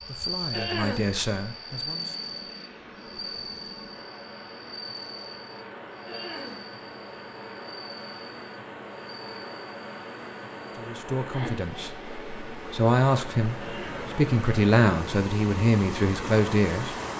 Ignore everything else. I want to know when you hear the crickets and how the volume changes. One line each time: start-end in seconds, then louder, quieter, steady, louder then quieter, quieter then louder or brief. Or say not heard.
0.0-10.9 quieter.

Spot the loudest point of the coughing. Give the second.
1 s.